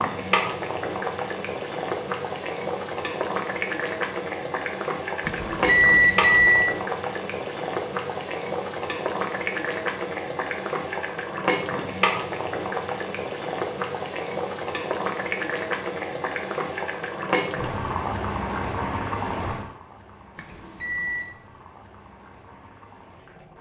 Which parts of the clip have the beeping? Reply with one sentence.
You can hear the beeping from 5.2 to 6.8 s and from 20.4 to 21.3 s.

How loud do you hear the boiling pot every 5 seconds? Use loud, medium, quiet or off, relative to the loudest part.
loud, loud, loud, loud, quiet.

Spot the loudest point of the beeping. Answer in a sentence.
The loudest moment of the beeping is at 6 seconds.